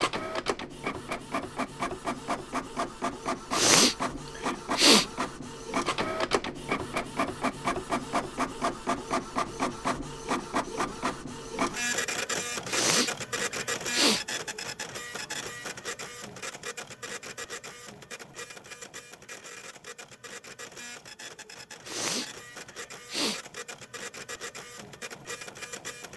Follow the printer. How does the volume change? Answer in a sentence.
The volume of the printer goes down.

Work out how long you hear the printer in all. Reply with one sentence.
You can hear the printer for 26 seconds altogether.